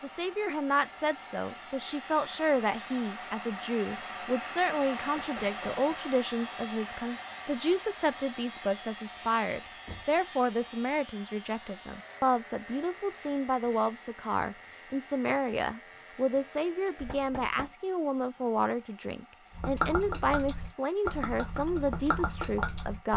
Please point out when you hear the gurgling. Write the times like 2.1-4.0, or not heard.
19.6-23.1.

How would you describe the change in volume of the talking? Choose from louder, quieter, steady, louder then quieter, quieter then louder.
steady.